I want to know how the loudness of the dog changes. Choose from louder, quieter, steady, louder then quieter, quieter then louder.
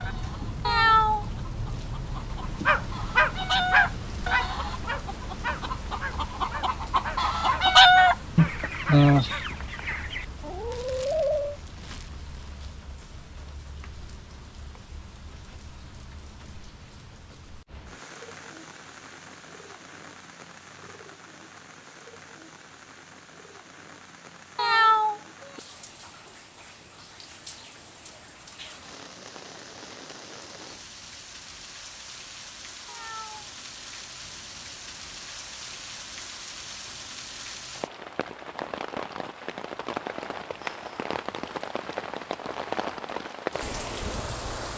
quieter.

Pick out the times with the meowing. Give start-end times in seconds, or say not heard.
0.7-1.2, 24.6-25.6, 32.9-33.5.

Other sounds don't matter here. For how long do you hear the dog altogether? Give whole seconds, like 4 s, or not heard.
7 s.